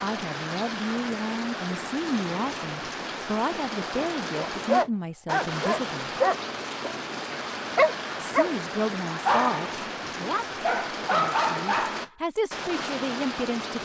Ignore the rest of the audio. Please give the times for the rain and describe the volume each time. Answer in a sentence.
You can hear the rain from 0.0 to 13.8 s, at a steady volume.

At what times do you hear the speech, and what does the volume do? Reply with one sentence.
You can hear the speech from 0.0 to 6.1 s, at a steady volume; and from 8.2 to 13.8 s, getting quieter then louder.